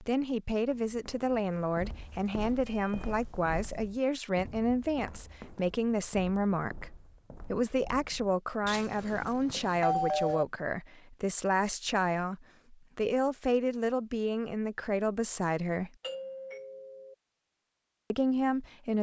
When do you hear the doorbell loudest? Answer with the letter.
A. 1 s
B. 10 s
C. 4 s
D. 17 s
B.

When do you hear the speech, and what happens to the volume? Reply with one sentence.
You can hear the speech from 0.0 to 15.9 s, at a steady volume; and briefly from 18.1 to 18.9 s.